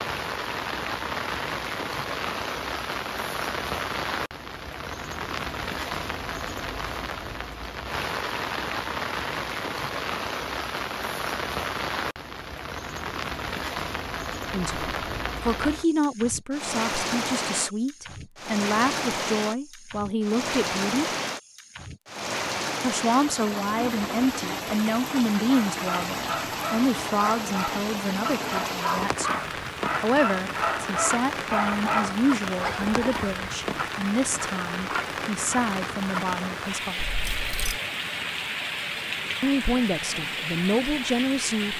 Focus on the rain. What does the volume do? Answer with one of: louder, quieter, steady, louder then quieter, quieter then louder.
steady.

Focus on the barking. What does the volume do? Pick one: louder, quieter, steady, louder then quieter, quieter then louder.
louder.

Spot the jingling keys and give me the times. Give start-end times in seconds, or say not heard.
37.0-37.8.